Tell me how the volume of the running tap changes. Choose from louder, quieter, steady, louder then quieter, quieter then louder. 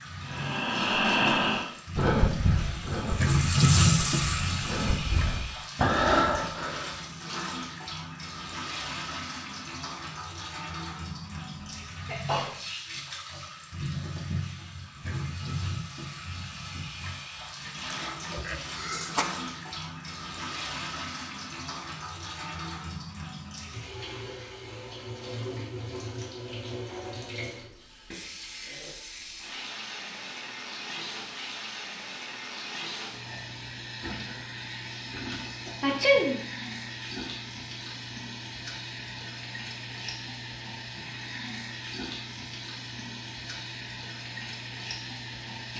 quieter.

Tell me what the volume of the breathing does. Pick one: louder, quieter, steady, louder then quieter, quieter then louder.
quieter then louder.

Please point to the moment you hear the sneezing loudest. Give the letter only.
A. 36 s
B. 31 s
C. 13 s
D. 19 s
A.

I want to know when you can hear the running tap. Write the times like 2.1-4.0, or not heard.
0.0-45.7.